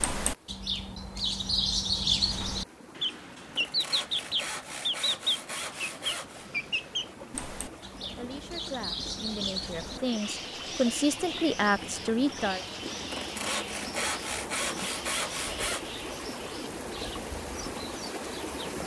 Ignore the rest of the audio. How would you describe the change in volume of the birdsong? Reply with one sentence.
The volume of the birdsong goes down.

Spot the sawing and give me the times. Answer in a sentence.
You can hear the sawing from 3.5 to 6.5 s and from 13.1 to 15.8 s.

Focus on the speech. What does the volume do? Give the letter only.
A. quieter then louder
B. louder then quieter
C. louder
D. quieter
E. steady
C.